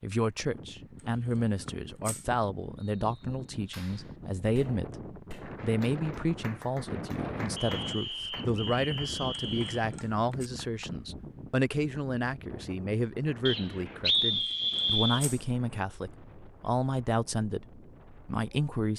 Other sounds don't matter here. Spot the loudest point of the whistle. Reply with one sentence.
The volume of the whistle peaks at 14 seconds.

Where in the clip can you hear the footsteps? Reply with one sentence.
You can't hear the footsteps here.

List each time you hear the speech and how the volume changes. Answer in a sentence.
The speech can be heard from 0.0 to 18.9 s, at a steady volume.